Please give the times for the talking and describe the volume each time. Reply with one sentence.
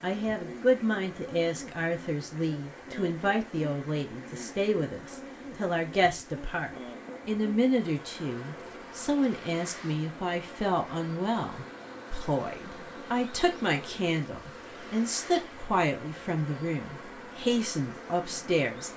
You can hear the talking from 0.0 to 18.9 s, at a steady volume.